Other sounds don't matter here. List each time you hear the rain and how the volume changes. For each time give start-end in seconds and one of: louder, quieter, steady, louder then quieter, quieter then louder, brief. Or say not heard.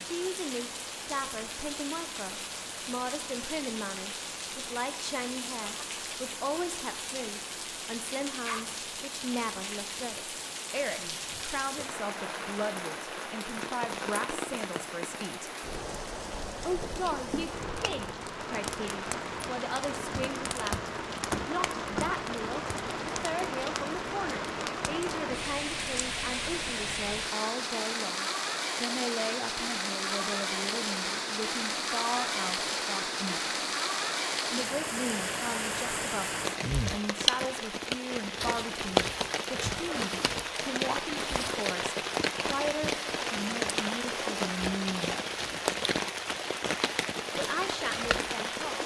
0.0-48.8 louder.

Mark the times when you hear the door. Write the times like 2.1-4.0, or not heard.
20.1-22.8.